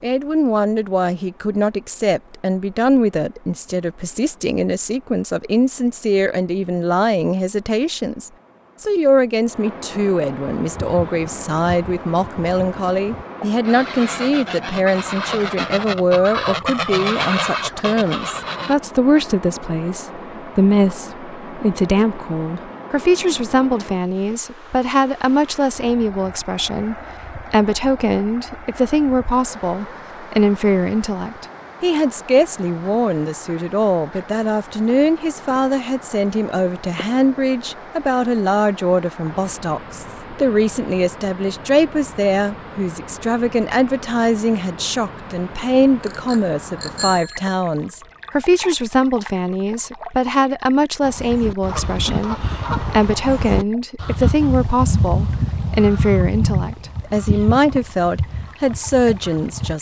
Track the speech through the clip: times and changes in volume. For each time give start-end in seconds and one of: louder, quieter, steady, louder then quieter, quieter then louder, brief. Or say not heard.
0.0-59.7 steady.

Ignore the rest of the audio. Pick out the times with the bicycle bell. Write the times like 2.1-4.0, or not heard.
46.0-47.4.